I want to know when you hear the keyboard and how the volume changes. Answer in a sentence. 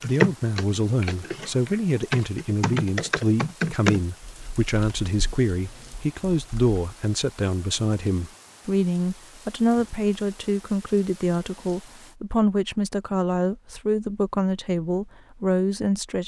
The keyboard can be heard from 0.0 to 6.8 s, getting louder then quieter.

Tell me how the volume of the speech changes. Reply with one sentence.
The volume of the speech stays about the same.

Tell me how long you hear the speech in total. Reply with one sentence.
The speech can be heard for 16 seconds in total.